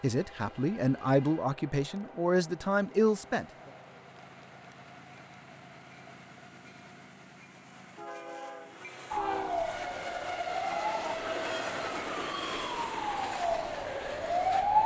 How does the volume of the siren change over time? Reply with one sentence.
The loudness of the siren goes down, then up.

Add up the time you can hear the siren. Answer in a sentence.
The siren can be heard for 6 seconds in total.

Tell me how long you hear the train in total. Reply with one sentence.
The train can be heard for 15 seconds in total.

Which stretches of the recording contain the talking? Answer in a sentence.
You can hear the talking from 0.0 to 3.5 s.